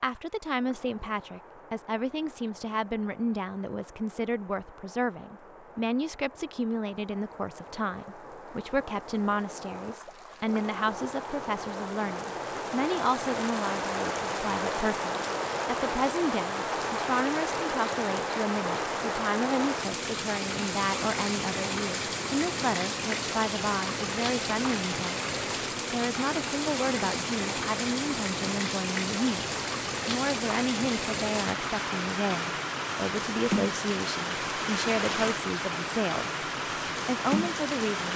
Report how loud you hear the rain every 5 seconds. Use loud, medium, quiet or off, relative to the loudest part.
quiet, quiet, loud, loud, loud, loud, loud, loud.